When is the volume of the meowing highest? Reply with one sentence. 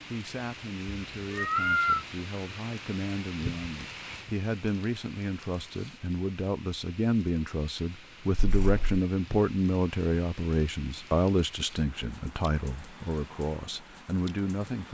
The volume of the meowing peaks at 2 seconds.